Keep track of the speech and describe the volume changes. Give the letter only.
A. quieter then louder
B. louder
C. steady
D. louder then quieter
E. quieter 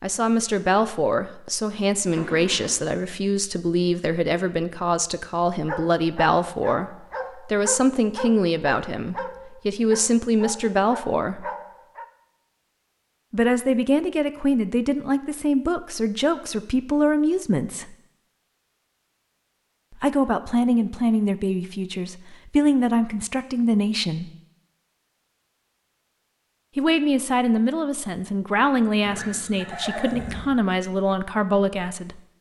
C.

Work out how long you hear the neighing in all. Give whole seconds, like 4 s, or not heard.
2 s.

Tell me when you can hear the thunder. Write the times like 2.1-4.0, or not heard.
not heard.